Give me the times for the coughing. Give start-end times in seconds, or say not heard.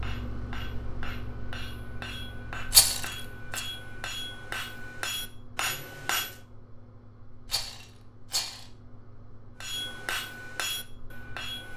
not heard.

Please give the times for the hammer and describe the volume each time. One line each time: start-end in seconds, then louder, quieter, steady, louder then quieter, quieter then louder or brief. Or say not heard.
0.0-6.4 louder
9.6-11.7 brief.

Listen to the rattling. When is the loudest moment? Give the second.
3 s.